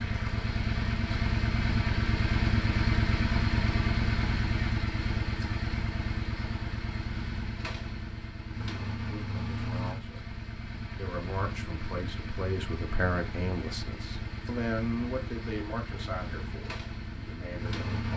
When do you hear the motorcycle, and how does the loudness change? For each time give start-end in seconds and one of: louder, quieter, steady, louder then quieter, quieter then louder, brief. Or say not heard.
0.0-18.1 quieter.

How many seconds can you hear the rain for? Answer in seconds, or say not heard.
not heard.